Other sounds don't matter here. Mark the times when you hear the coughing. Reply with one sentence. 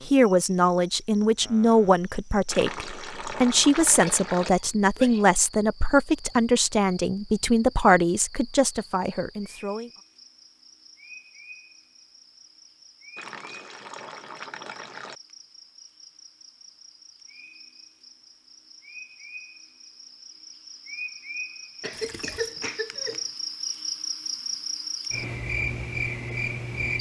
You can hear the coughing from 3.9 to 5.2 s and from 21.8 to 23.2 s.